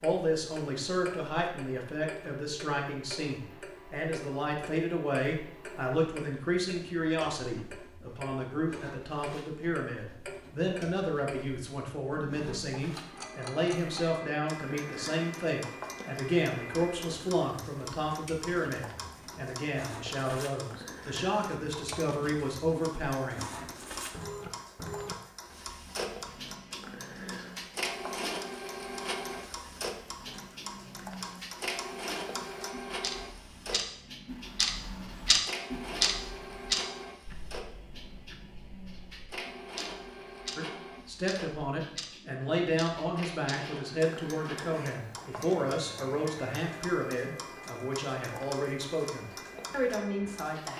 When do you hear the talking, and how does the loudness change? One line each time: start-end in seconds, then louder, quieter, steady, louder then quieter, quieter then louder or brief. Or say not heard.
0.0-23.6 steady
40.5-50.7 steady.